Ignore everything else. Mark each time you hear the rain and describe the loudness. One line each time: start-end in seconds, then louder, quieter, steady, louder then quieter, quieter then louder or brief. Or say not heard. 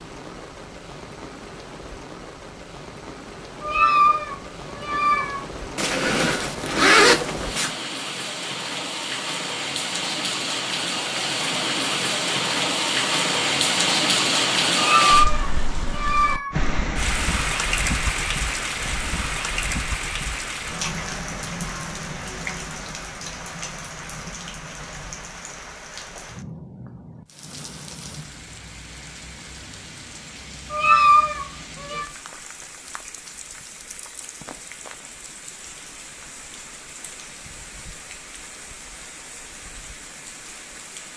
0.0-41.1 louder then quieter.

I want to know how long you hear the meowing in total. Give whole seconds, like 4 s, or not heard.
5 s.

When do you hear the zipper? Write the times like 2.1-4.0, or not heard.
5.8-7.8.